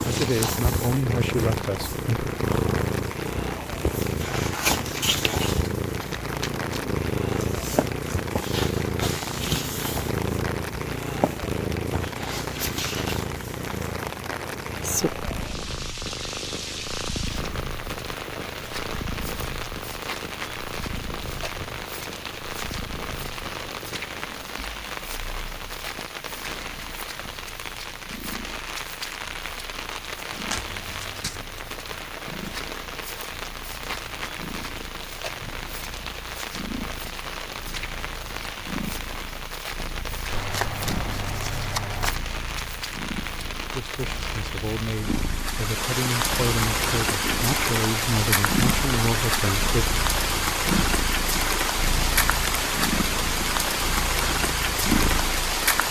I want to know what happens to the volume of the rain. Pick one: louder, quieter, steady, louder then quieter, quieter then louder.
louder.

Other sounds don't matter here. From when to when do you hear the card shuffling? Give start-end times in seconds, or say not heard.
5.0-6.8, 30.4-31.6, 40.3-42.1.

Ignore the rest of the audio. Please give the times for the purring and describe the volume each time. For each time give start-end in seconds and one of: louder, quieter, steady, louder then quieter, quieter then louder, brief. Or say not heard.
0.0-55.5 quieter then louder.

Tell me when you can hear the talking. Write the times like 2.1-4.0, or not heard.
0.0-2.4, 43.7-49.9.